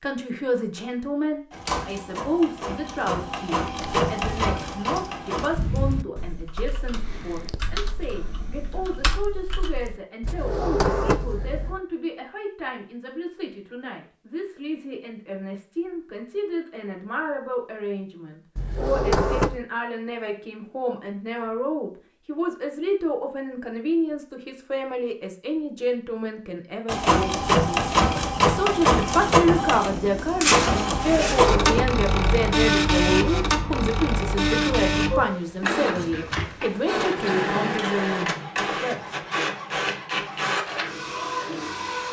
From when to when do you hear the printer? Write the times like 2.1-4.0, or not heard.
1.5-5.5, 26.9-42.0.